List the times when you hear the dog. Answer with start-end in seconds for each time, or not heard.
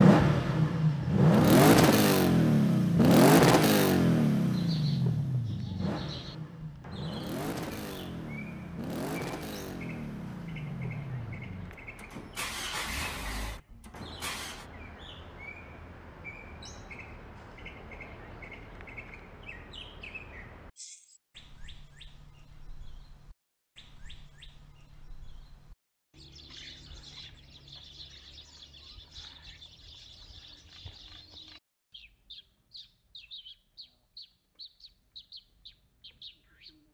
not heard.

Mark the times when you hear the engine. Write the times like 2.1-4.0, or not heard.
0.0-14.7.